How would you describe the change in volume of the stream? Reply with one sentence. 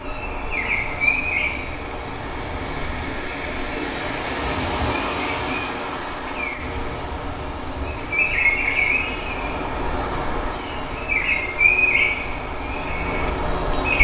The loudness of the stream goes up, then down.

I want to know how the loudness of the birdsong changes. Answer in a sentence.
The loudness of the birdsong goes down, then up.